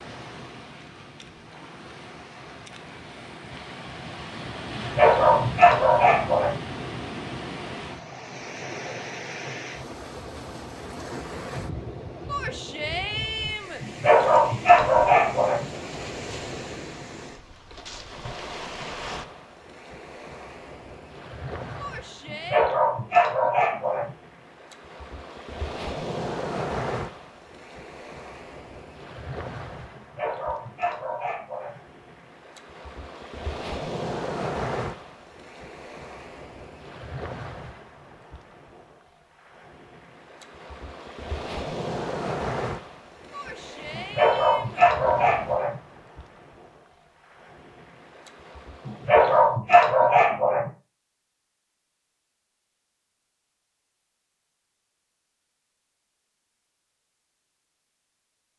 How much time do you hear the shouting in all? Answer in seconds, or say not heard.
4 s.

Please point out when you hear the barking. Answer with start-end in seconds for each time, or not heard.
4.8-6.6, 13.8-15.7, 22.2-24.1, 29.9-31.8, 43.9-45.8, 48.9-50.7.